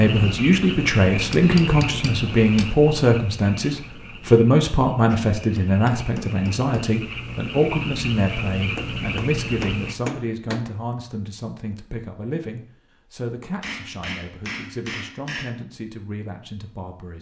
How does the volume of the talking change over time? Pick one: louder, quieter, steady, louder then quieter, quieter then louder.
quieter.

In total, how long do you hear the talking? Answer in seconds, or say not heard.
17 s.